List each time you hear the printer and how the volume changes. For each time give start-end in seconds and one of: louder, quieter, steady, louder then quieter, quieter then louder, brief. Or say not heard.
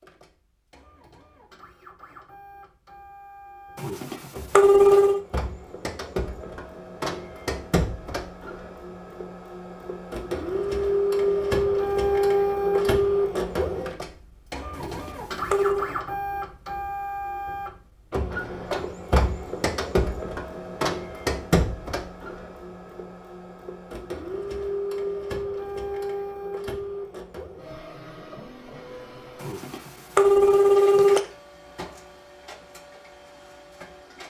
0.0-34.2 louder then quieter.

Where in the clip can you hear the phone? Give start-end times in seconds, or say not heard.
3.8-5.2, 14.7-15.9, 29.4-31.2.